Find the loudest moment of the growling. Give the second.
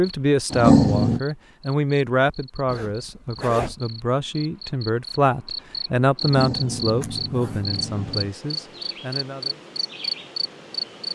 1 s.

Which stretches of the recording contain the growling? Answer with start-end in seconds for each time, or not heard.
0.5-1.2, 6.2-8.3.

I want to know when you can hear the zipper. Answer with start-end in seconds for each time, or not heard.
2.6-3.8, 7.0-7.7.